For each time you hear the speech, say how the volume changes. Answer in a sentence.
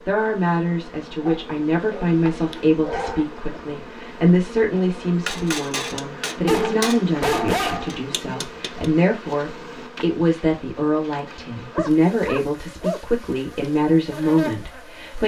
You can hear the speech from 0.1 to 15.2 s, at a steady volume.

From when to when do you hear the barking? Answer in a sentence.
You can hear the barking from 1.2 to 3.2 s, from 6.5 to 8.3 s and from 11.7 to 13.0 s.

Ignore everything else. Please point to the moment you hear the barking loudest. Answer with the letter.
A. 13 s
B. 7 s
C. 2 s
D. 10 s
B.